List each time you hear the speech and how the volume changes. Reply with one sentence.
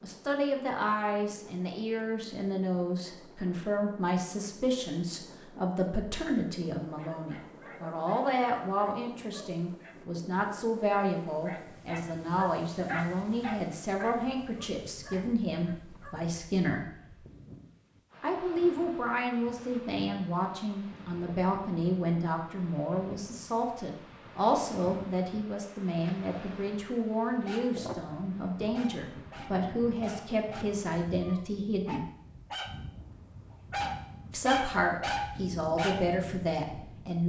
The speech can be heard from 0.0 to 16.9 s, at a steady volume; from 18.2 to 32.0 s, at a steady volume; and briefly from 34.3 to 37.2 s.